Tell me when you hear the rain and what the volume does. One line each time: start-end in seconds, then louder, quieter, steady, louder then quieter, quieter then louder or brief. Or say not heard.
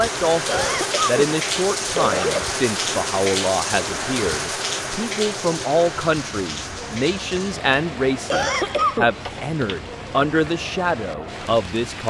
0.0-12.0 quieter.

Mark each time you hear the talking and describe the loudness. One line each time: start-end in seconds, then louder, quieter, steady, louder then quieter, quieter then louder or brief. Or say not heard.
0.0-12.0 steady.